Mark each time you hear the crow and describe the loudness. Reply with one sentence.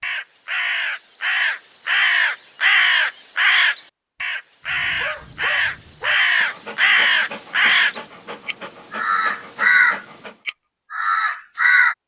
You can hear the crow from 0.0 to 11.9 s, at a steady volume.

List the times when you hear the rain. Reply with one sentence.
The rain can't be heard in this clip.